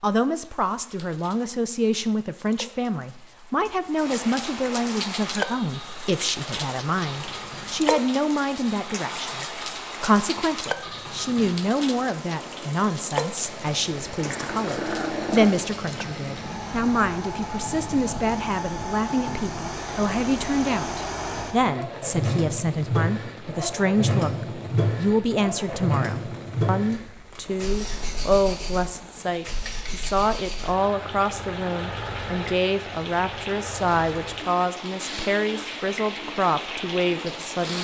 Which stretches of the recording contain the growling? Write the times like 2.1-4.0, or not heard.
14.2-15.6.